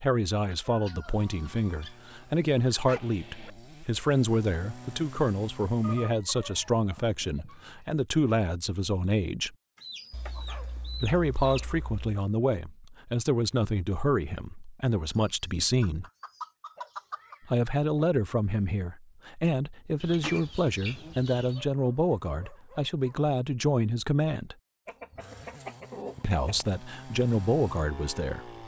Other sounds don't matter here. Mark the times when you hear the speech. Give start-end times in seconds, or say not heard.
0.0-9.6, 10.9-16.1, 17.4-24.6, 26.2-28.5.